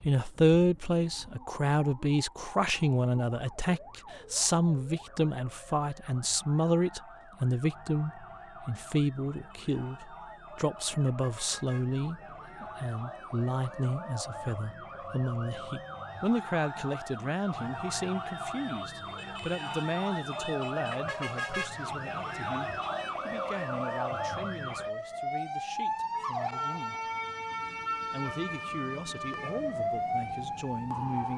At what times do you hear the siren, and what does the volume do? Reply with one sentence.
The siren can be heard from 0.0 to 31.3 s, getting louder.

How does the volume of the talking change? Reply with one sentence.
The volume of the talking goes down.